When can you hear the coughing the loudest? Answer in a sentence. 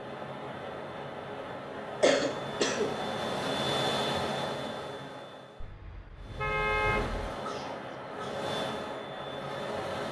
The loudest moment of the coughing is at 2 seconds.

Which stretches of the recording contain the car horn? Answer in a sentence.
The car horn can be heard from 5.6 to 7.3 s.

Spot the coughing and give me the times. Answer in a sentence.
The coughing can be heard from 2.0 to 3.0 s and from 7.3 to 8.4 s.